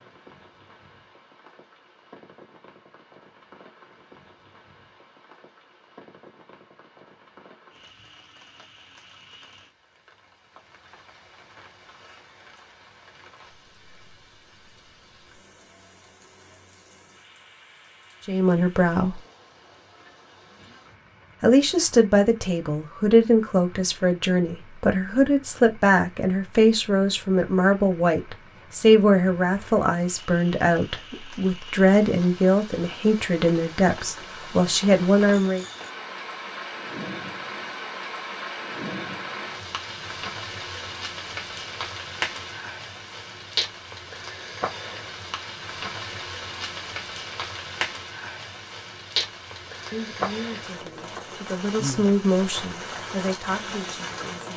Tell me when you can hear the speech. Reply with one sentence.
You can hear the speech from 18.2 to 19.2 s, from 21.4 to 35.6 s and from 49.9 to 54.5 s.